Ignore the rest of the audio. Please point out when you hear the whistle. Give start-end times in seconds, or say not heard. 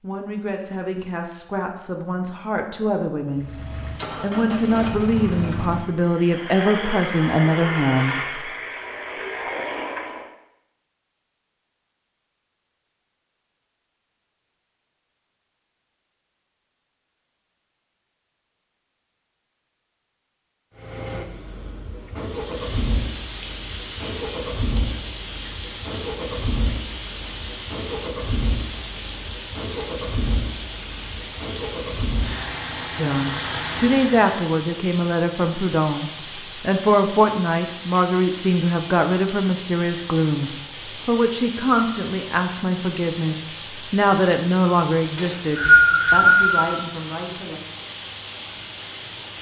45.1-46.7.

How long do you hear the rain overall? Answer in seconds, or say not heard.
27 s.